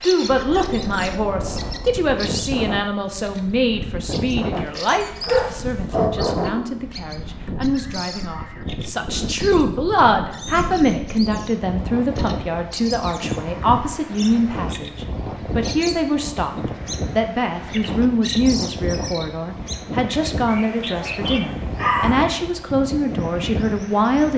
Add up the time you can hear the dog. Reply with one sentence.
The dog can be heard for 4 seconds in total.